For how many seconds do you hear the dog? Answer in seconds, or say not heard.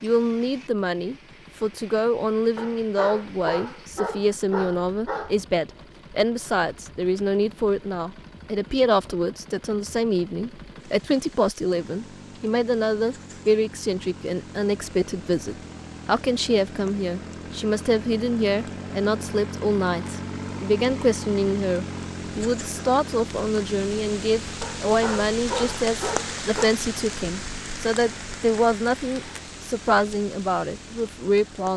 5 s.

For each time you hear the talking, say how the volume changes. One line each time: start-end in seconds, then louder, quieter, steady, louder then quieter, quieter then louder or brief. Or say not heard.
0.0-31.7 steady.